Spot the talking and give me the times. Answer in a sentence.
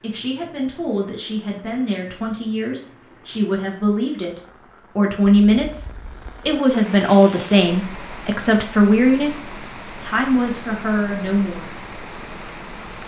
The talking can be heard from 0.0 to 11.7 s.